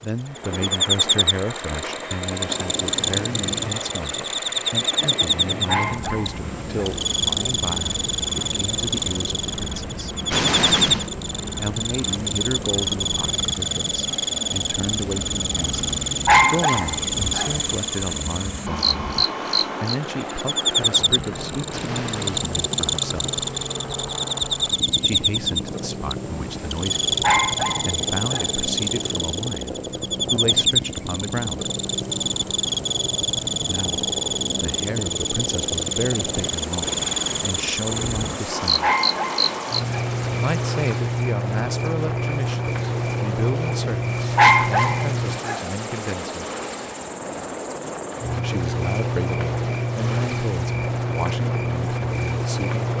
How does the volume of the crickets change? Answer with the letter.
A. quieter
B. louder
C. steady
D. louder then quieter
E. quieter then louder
C.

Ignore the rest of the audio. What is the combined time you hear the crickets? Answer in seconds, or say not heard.
53 s.